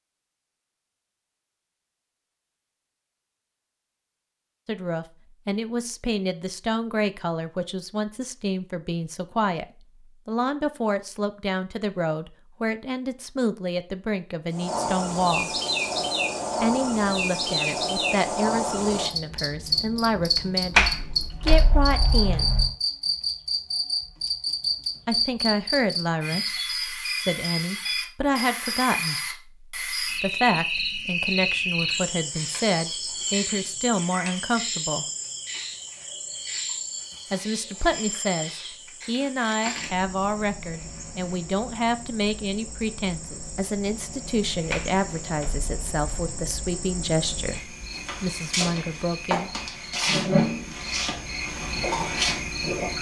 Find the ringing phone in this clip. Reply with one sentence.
You can't hear the ringing phone here.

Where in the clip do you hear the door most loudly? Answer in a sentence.
The loudest moment of the door is at 21 seconds.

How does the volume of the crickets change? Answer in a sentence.
The loudness of the crickets goes down, then up.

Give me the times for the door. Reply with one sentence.
You can hear the door from 20.8 to 22.7 s and from 44.7 to 46.6 s.